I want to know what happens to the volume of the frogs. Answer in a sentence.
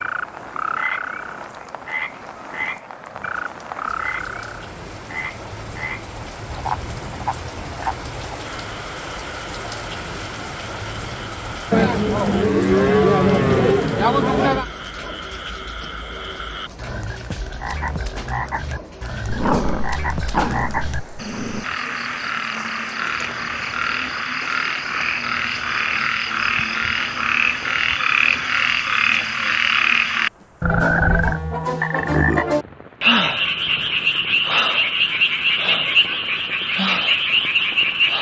The volume of the frogs goes down, then up.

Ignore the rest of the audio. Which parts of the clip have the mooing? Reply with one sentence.
You can hear the mooing from 11.7 to 14.7 s.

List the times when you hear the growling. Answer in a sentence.
You can hear the growling from 19.2 to 21.6 s.